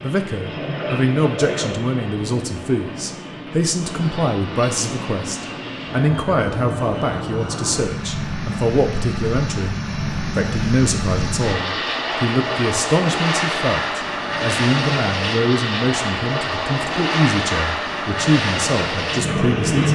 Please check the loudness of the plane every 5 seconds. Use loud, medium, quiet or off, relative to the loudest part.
medium, medium, loud, loud.